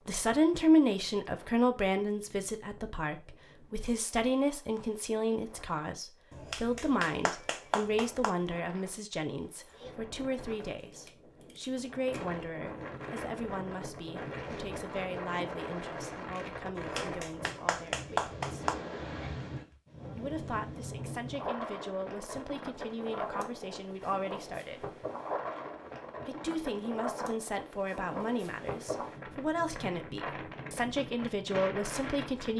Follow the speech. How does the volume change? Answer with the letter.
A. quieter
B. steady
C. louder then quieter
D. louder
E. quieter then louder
E.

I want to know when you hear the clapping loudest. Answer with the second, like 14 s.
18 s.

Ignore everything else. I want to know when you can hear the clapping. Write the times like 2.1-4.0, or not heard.
6.3-8.3, 16.8-18.8.